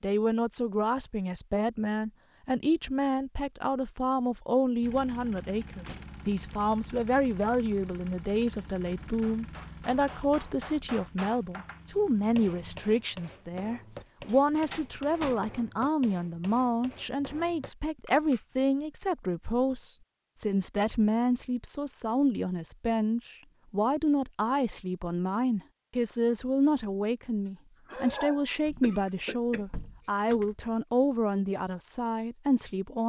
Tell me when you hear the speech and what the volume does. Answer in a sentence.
The speech can be heard from 0.0 to 33.0 s, at a steady volume.